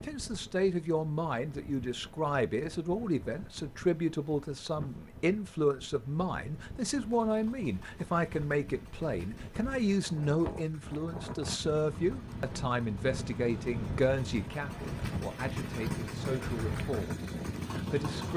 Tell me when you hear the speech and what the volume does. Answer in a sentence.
The speech can be heard from 0.0 to 18.3 s, getting quieter.